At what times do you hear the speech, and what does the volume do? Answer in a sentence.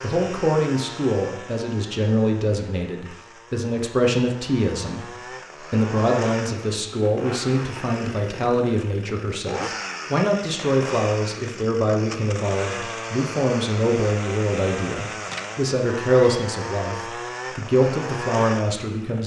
You can hear the speech from 0.0 to 19.2 s, at a steady volume.